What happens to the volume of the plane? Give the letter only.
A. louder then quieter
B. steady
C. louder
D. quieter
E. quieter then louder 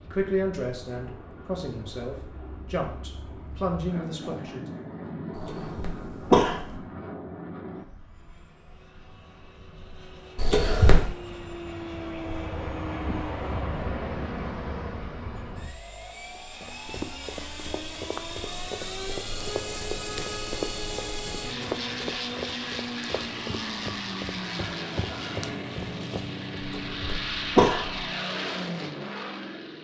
C.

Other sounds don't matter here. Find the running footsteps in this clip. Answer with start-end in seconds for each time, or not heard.
16.4-26.4.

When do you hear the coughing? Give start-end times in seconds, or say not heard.
5.3-6.8, 10.3-11.1, 26.6-28.0.